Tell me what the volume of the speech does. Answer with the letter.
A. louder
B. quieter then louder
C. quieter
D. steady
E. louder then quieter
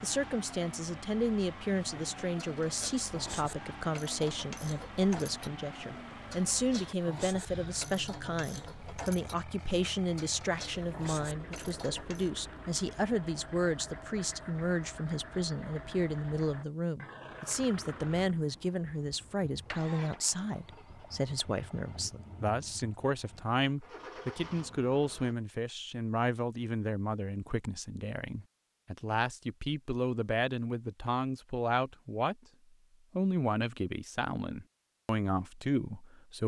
D.